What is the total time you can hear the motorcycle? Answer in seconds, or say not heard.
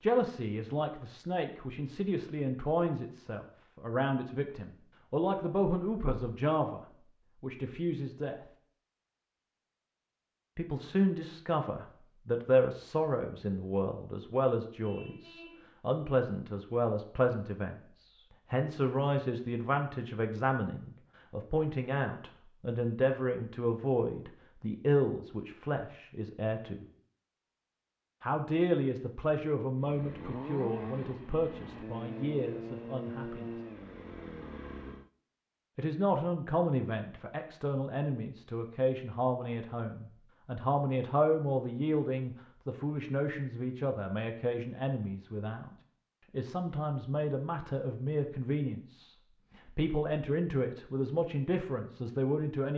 5 s.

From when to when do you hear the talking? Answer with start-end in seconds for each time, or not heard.
0.0-6.8, 7.4-8.3, 10.6-26.9, 28.2-33.5, 35.8-45.7, 46.3-52.7.